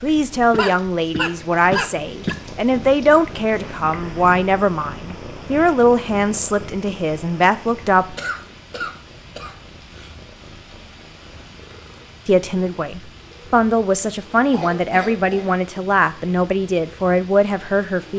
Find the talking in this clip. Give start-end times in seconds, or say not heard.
0.0-8.2, 12.2-18.1.